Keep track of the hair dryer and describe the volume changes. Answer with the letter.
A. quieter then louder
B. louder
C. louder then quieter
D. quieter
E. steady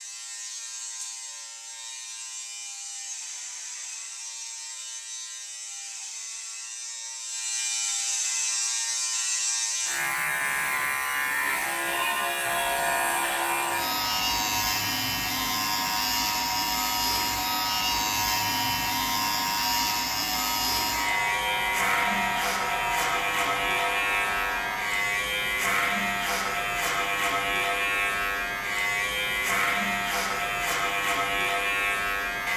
E.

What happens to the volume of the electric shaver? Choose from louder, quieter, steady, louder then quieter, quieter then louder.
louder.